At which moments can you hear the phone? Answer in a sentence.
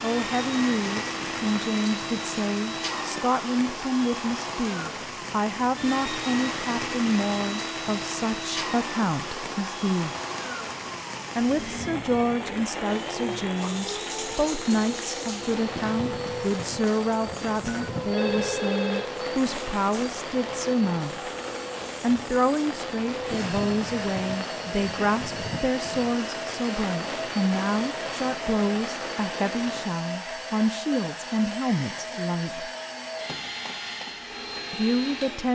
The phone can be heard from 17.6 to 19.1 s.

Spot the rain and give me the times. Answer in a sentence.
The rain can be heard from 0.0 to 29.9 s.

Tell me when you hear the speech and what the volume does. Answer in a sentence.
The speech can be heard from 0.0 to 10.2 s, at a steady volume; from 11.3 to 21.3 s, at a steady volume; from 22.0 to 32.7 s, at a steady volume; and briefly from 34.7 to 35.4 s.